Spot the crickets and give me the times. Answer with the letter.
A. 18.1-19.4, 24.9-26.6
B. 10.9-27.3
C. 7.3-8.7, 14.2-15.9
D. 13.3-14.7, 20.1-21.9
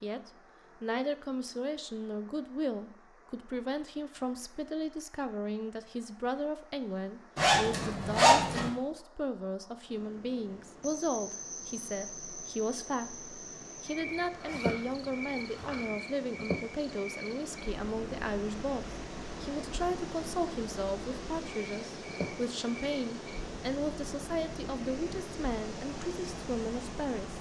B.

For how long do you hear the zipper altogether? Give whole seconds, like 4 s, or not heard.
3 s.